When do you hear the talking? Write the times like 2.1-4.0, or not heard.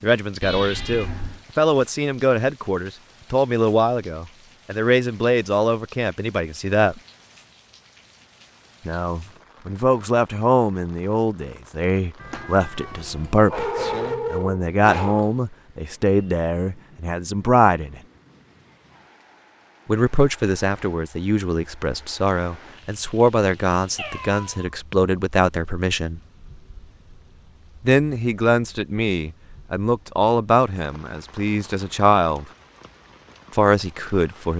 0.0-7.0, 8.8-18.0, 19.9-26.2, 27.8-32.5, 33.5-34.5.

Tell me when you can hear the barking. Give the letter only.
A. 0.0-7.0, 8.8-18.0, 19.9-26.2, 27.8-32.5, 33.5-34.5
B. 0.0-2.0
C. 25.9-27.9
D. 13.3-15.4
D.